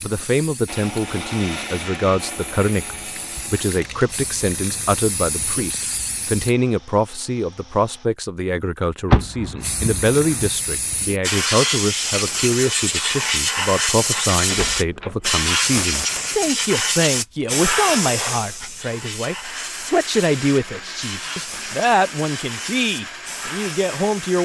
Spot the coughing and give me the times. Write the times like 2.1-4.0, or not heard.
not heard.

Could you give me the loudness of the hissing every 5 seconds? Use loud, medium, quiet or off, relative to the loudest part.
quiet, medium, loud, loud, medium.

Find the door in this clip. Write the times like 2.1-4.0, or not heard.
9.1-10.5, 14.5-15.4.